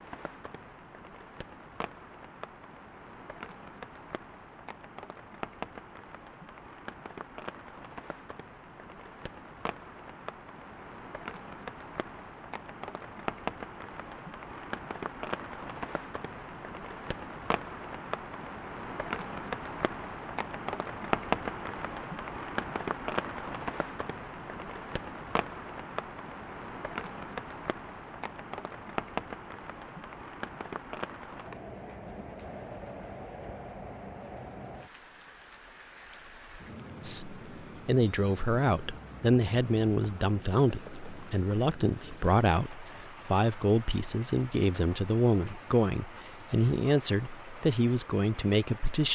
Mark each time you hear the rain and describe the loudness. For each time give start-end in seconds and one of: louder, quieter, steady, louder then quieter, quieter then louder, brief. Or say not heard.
0.0-49.1 louder then quieter.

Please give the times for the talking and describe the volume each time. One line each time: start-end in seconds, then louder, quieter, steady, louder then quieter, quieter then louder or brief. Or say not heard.
37.0-49.1 steady.